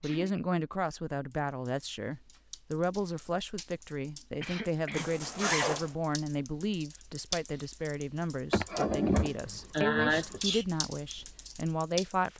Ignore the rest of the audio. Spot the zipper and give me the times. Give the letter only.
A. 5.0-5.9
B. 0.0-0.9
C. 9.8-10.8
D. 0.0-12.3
A.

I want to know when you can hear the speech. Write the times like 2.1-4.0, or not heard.
0.0-12.3.